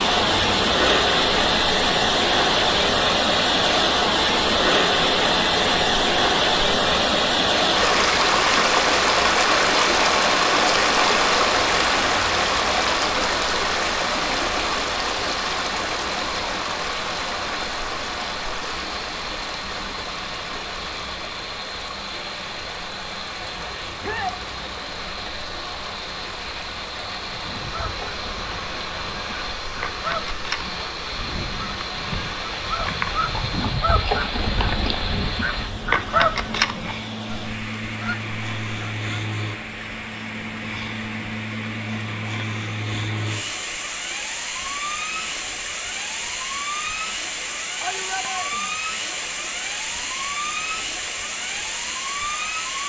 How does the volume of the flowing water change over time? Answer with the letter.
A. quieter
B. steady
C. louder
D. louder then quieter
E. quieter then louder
A.